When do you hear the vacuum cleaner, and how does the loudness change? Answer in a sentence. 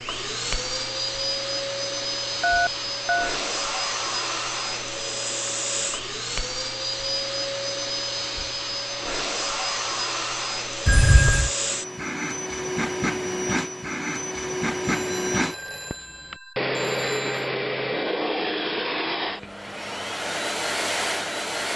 The vacuum cleaner can be heard from 0.0 to 21.7 s, at a steady volume.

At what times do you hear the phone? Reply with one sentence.
You can hear the phone from 2.4 to 3.4 s, from 10.8 to 11.5 s and from 14.8 to 17.5 s.